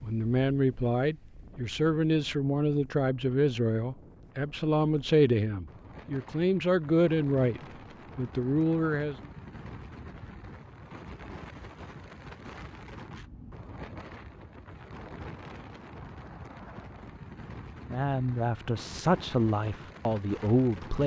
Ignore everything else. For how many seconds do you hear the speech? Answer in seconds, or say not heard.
12 s.